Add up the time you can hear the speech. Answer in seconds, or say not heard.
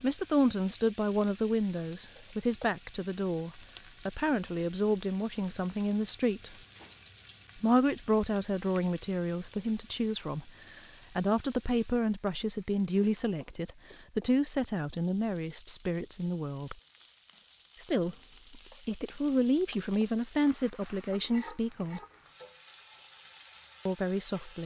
21 s.